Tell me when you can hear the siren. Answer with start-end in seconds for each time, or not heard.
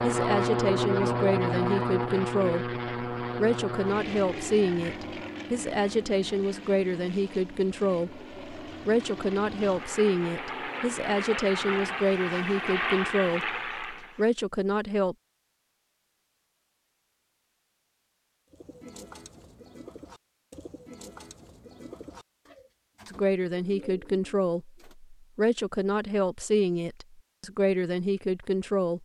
not heard.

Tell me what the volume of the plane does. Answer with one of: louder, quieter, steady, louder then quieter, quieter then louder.
quieter then louder.